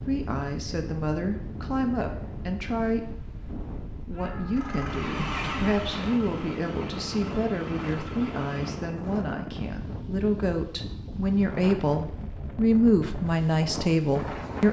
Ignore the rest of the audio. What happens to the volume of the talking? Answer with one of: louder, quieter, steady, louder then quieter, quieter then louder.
louder.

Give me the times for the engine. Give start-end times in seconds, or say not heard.
4.5-8.8.